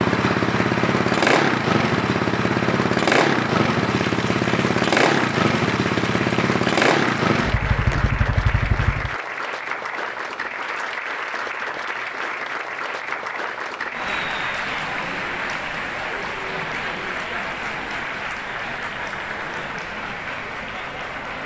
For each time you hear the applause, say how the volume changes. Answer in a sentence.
The applause can be heard from 0.0 to 21.4 s, at a steady volume.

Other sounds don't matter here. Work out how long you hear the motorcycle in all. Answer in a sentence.
You can hear the motorcycle for 9 seconds altogether.